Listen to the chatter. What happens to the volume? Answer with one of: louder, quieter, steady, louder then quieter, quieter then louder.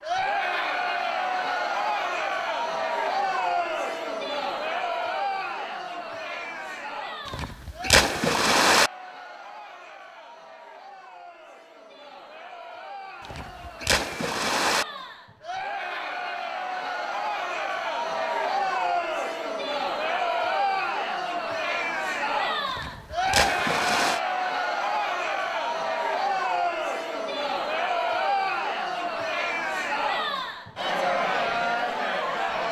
quieter then louder.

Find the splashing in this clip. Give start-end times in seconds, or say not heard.
7.2-8.9, 13.2-14.8, 22.7-24.2.